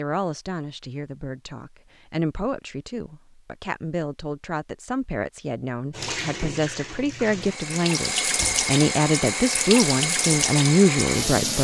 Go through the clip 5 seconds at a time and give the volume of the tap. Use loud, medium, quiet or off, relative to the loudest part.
off, loud, loud.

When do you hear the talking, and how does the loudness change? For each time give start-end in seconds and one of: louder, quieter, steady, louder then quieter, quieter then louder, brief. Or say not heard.
0.0-11.5 louder.